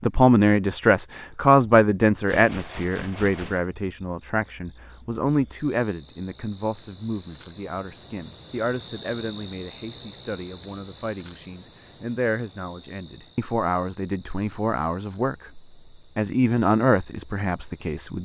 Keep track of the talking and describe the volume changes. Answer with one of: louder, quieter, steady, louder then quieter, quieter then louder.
quieter then louder.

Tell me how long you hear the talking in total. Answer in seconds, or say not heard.
18 s.